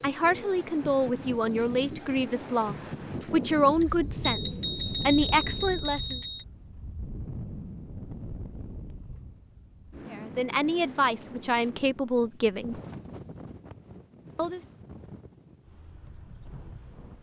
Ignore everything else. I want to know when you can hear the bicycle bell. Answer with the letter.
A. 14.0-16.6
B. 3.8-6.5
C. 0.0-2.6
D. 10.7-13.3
B.